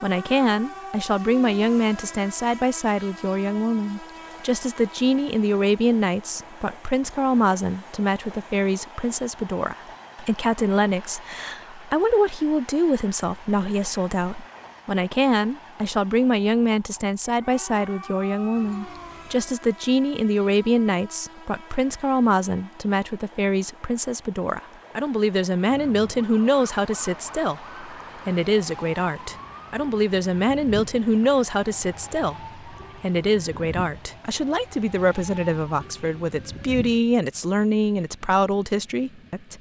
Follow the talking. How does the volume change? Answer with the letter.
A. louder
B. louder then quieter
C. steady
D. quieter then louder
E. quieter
C.